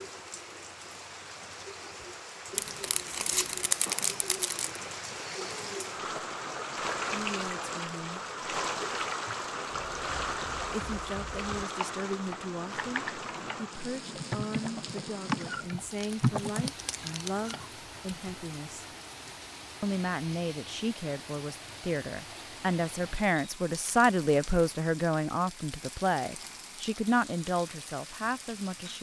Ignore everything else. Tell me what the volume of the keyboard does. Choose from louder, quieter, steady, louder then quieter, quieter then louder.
louder.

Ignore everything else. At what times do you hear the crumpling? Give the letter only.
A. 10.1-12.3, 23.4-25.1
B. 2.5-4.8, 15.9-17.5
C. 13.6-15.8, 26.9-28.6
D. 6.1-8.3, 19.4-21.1
B.